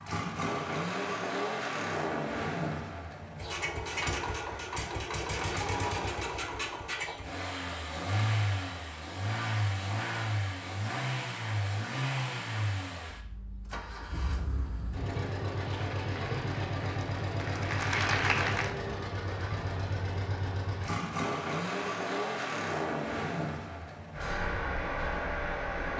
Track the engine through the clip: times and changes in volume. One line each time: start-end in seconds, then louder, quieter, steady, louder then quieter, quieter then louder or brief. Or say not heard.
0.0-25.9 steady.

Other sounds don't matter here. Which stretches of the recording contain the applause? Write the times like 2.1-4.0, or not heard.
15.5-18.8.